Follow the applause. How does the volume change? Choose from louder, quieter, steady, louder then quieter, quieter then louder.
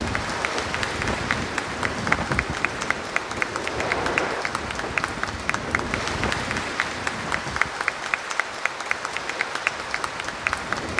steady.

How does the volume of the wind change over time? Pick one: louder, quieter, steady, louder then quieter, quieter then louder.
quieter.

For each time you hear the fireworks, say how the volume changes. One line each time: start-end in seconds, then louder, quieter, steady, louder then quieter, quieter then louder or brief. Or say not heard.
not heard.